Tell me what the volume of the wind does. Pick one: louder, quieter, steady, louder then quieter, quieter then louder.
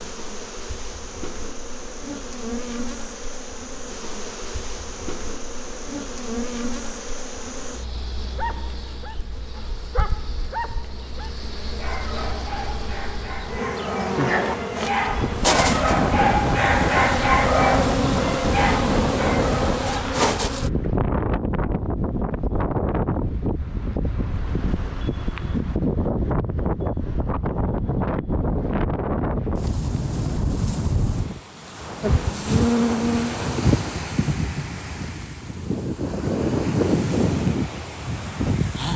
steady.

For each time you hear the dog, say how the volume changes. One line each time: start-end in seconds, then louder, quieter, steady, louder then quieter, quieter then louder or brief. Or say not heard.
8.3-19.9 louder.